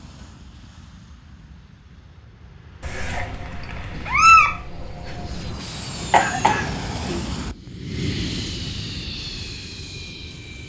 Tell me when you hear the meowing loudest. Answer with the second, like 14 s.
4 s.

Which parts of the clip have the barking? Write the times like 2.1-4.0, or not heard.
not heard.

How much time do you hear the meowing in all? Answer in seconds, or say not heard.
3 s.